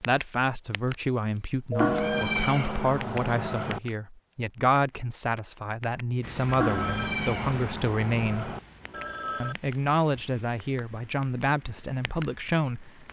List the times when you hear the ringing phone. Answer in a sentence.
The ringing phone can be heard from 1.7 to 2.2 s, from 6.6 to 7.1 s and from 8.8 to 9.6 s.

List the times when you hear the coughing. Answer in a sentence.
You can't hear the coughing here.